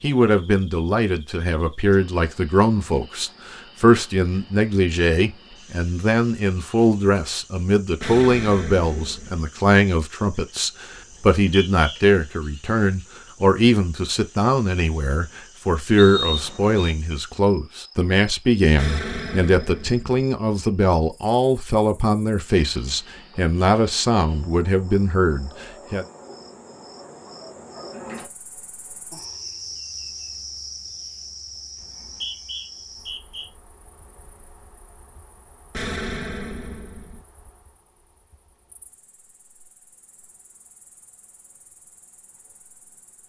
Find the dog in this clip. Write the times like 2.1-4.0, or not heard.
not heard.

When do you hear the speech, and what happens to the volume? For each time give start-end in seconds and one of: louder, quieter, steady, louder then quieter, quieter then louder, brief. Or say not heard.
0.0-26.1 steady.